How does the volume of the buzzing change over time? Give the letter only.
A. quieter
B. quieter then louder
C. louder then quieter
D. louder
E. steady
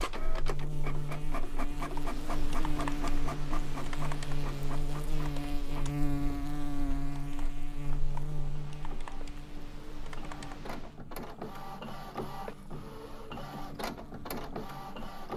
A.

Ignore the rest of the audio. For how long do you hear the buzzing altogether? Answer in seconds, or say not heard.
15 s.